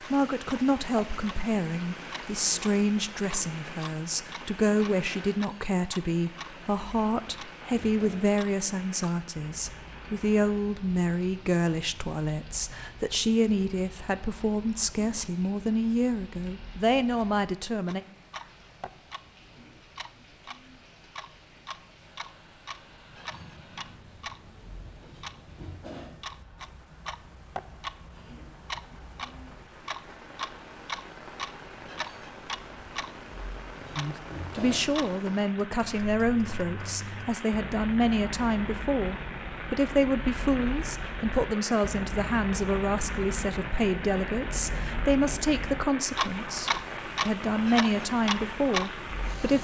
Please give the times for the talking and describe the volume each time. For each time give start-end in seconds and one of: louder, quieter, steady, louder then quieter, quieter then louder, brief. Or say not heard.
0.0-18.0 steady
34.0-49.5 steady.